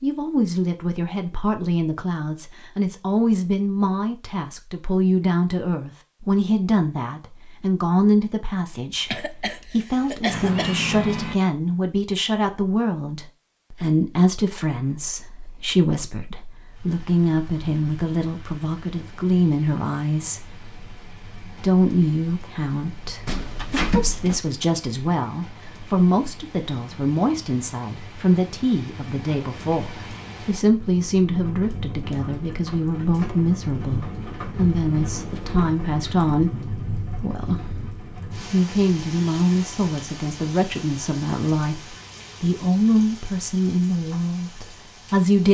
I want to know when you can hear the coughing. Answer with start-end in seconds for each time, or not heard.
8.9-10.8.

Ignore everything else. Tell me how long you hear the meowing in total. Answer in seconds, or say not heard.
3 s.